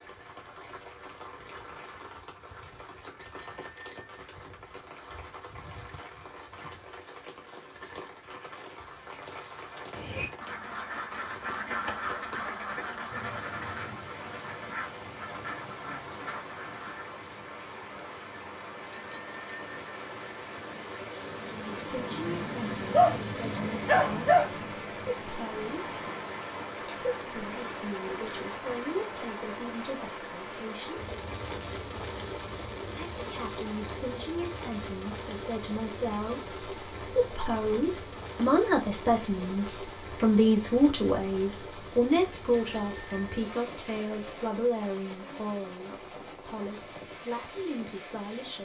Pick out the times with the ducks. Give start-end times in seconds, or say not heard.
9.9-17.1.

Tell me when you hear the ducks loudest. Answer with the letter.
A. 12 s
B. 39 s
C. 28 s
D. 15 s
A.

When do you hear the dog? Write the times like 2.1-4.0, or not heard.
22.9-24.4.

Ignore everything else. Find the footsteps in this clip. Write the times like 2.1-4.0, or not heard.
not heard.